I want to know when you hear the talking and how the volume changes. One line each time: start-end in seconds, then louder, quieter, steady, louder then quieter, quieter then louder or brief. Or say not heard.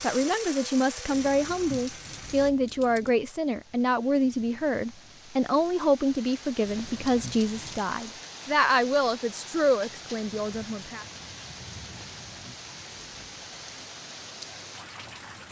0.0-11.1 steady.